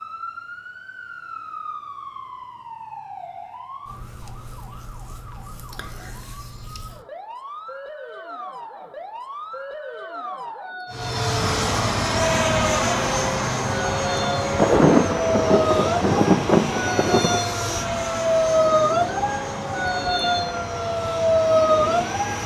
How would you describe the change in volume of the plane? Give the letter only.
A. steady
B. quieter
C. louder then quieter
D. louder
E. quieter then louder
B.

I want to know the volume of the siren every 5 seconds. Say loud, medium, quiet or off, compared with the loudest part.
quiet, quiet, medium, loud, loud.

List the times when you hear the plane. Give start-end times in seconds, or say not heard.
10.9-22.4.